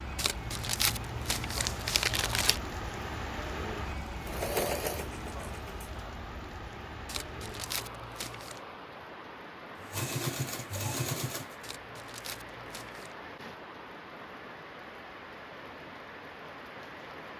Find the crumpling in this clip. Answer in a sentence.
You can hear the crumpling from 0.1 to 2.6 s, from 7.0 to 8.6 s and from 11.6 to 13.2 s.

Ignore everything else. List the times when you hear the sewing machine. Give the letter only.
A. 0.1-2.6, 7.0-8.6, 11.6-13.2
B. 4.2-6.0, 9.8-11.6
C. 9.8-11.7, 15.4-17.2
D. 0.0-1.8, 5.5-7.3
B.